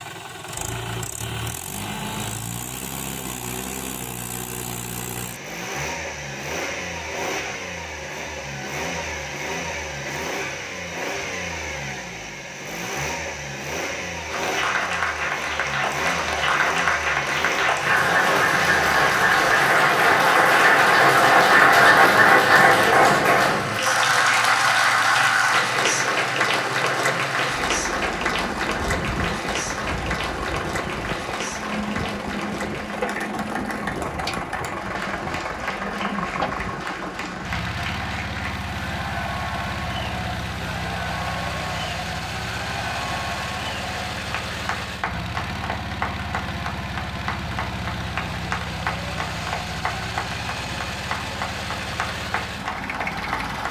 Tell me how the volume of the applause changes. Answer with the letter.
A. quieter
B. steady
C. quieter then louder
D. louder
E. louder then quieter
A.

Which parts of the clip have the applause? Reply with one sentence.
You can hear the applause from 14.3 to 53.6 s.